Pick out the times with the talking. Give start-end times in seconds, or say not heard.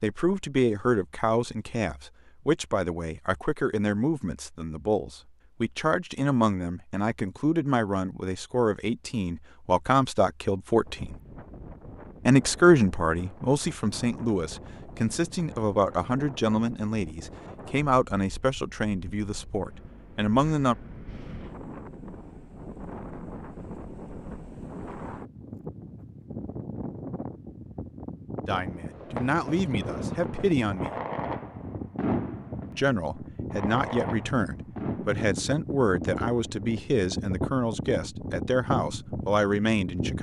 0.0-11.2, 12.2-20.8, 28.4-30.9, 32.7-40.1.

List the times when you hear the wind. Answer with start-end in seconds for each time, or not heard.
10.8-40.1.